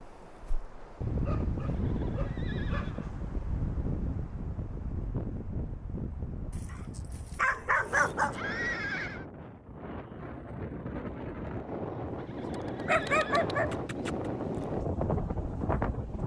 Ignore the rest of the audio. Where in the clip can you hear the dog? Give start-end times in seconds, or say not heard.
1.2-3.1, 6.5-8.3, 12.8-14.1.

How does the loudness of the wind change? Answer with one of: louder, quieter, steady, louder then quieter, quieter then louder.
quieter then louder.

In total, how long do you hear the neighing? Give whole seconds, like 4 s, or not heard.
4 s.